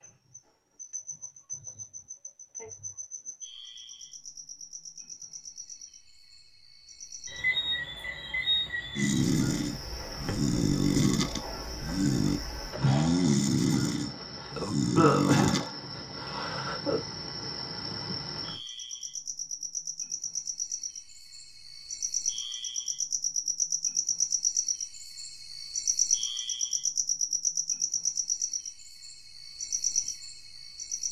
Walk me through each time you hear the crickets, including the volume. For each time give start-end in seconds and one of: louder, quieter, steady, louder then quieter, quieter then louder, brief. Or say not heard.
0.0-31.0 louder.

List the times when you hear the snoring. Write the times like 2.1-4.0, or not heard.
8.9-15.7.